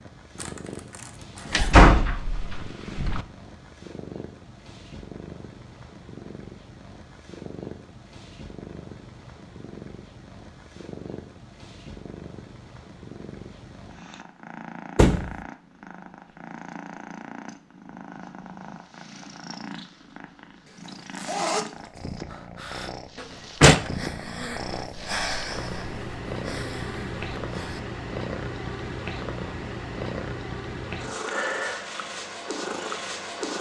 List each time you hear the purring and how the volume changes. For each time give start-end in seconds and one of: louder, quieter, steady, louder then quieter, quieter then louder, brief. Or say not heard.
0.0-33.5 louder.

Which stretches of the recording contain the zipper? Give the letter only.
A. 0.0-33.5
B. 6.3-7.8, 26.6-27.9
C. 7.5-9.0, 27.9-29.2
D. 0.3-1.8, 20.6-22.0
D.